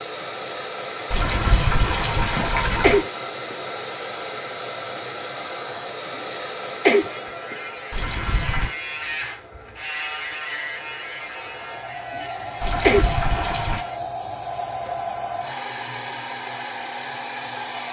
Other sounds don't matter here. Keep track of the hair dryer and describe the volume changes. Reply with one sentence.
The volume of the hair dryer goes down, then up.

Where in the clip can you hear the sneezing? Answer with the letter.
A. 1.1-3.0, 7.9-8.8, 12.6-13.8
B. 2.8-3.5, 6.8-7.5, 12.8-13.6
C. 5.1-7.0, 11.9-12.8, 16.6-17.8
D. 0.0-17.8
B.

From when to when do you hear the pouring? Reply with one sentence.
The pouring can be heard from 1.1 to 3.0 s, from 7.9 to 8.8 s and from 12.6 to 13.8 s.